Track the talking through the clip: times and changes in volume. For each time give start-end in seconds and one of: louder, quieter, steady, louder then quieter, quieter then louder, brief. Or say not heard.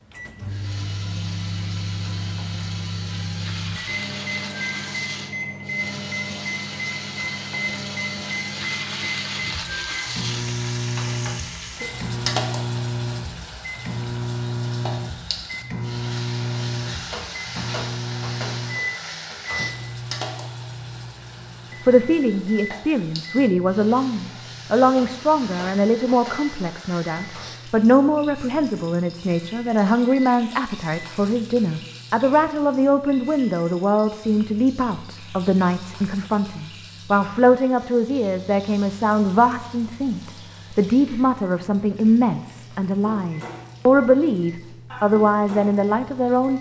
21.9-46.5 steady.